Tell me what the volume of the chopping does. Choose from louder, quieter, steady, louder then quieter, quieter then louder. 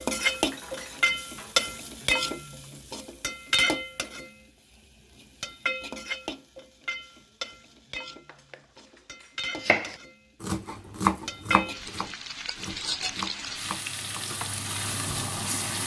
louder then quieter.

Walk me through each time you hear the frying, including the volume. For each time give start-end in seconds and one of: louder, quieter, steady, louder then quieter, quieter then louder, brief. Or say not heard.
0.0-15.8 quieter then louder.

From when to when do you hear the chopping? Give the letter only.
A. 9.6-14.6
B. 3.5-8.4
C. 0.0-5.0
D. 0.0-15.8
A.